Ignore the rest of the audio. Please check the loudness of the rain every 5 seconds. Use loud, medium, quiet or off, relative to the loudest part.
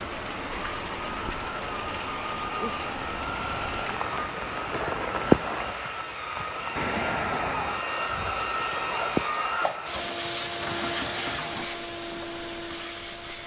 medium, loud, quiet.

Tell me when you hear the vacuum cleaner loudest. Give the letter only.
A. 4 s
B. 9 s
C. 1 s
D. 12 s
B.